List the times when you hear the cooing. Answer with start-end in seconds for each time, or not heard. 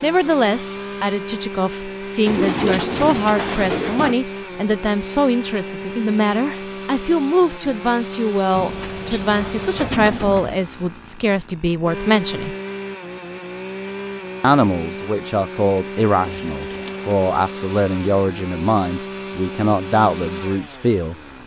2.2-4.2, 8.6-10.6, 16.2-18.2.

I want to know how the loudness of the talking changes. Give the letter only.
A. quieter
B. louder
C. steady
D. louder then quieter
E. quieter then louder
C.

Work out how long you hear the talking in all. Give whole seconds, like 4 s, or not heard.
19 s.